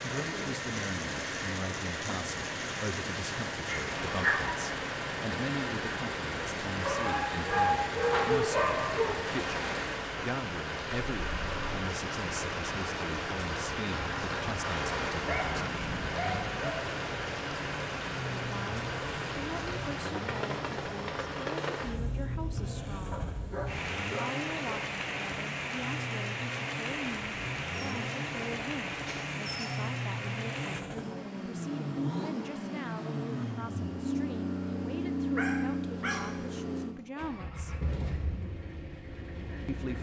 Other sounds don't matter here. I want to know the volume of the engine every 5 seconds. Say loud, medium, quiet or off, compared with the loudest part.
loud, loud, medium, medium, medium, medium, loud, loud.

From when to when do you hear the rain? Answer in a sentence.
You can hear the rain from 0.0 to 30.8 s.